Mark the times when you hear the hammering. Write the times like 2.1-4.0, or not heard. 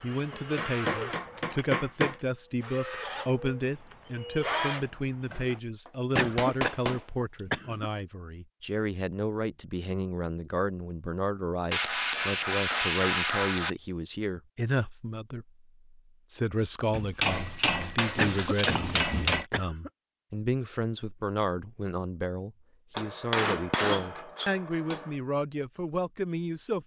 0.3-2.1, 5.8-7.8, 11.7-13.7, 16.9-19.4, 22.9-25.1.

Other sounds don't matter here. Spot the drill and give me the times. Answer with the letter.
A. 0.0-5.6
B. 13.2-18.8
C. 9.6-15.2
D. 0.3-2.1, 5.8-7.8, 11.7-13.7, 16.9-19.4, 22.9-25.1
A.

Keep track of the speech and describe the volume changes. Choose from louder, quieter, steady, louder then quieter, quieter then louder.
steady.